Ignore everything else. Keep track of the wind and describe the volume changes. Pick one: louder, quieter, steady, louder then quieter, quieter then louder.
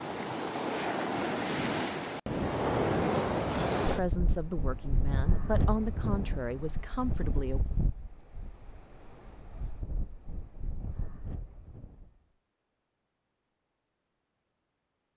quieter.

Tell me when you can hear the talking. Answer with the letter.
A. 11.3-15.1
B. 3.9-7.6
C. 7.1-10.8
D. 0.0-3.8
B.